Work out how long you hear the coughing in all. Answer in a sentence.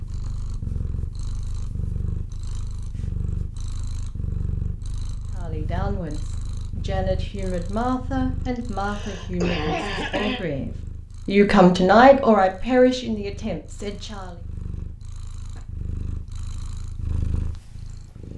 The coughing can be heard for 2 seconds in total.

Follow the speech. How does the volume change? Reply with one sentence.
The volume of the speech goes up, then down.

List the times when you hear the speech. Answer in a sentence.
The speech can be heard from 5.3 to 14.4 s.